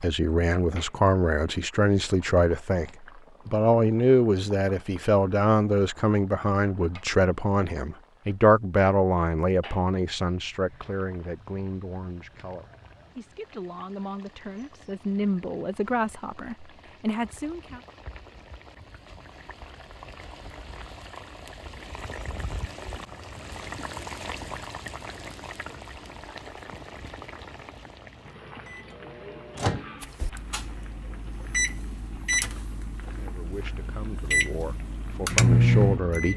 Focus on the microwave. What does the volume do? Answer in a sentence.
The loudness of the microwave goes up.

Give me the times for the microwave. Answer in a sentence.
You can hear the microwave from 28.6 to 36.3 s.